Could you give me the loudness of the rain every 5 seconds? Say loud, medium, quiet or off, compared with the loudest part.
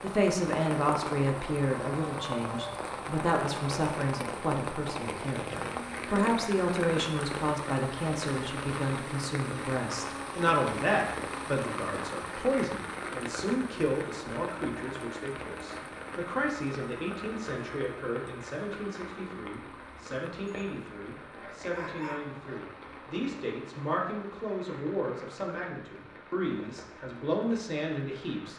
loud, loud, loud, medium, medium, quiet.